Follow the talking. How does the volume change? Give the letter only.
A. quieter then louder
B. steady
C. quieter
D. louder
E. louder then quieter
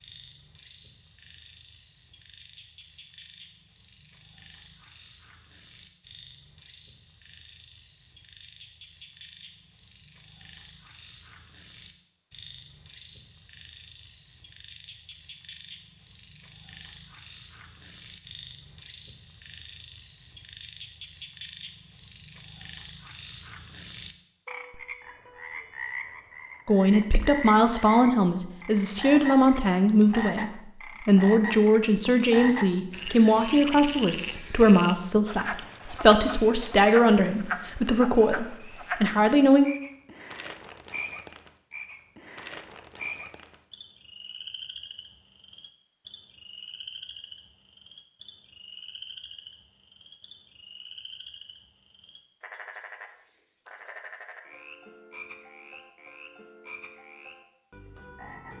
B.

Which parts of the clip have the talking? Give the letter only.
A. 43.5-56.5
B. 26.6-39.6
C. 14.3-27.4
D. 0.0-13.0
B.